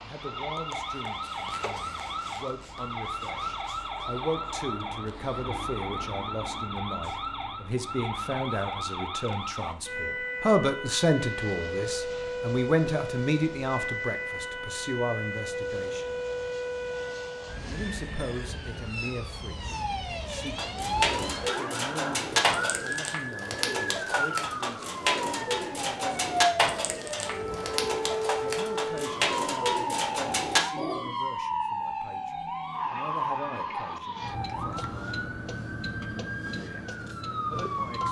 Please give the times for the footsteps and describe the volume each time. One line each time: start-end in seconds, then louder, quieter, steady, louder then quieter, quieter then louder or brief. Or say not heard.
not heard.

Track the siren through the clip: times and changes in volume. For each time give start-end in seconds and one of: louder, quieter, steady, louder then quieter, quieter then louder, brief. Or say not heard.
0.1-38.0 steady.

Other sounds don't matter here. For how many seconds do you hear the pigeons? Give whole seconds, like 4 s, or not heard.
11 s.